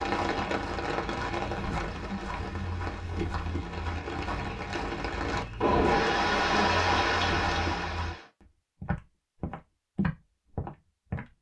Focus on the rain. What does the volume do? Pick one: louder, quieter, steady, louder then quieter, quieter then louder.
quieter then louder.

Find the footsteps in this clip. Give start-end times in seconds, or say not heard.
0.0-11.3.